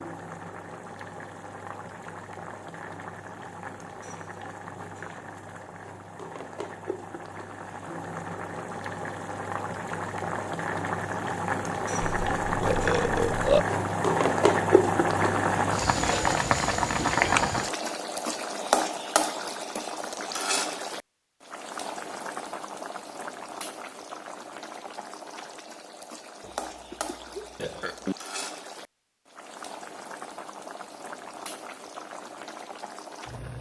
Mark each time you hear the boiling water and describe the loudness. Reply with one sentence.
You can hear the boiling water from 0.0 to 33.5 s, getting louder then quieter.